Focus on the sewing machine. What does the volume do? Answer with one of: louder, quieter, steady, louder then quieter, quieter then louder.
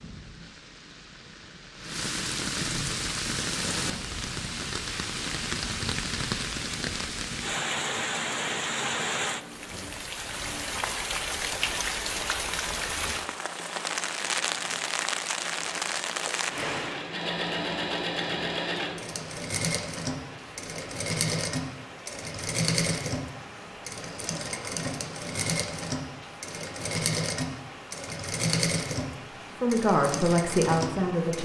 louder.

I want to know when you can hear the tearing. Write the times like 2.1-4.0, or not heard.
not heard.